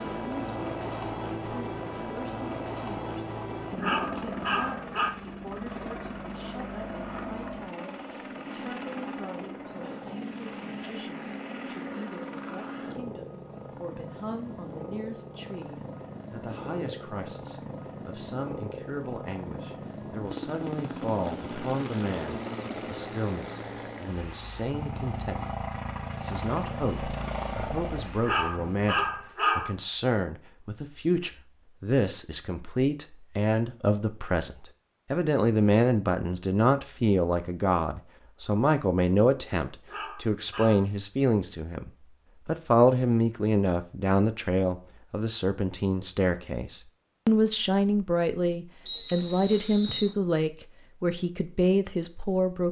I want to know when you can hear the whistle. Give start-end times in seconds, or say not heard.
48.9-50.1.